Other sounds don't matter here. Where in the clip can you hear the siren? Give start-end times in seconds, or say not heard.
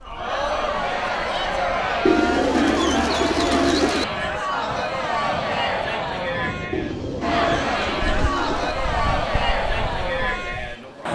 not heard.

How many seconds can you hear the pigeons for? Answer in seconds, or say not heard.
4 s.